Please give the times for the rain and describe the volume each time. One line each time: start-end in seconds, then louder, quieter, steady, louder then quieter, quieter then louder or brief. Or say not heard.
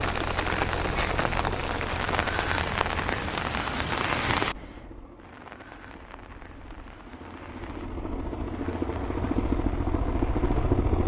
0.0-10.8 quieter.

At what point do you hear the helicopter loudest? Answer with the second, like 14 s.
11 s.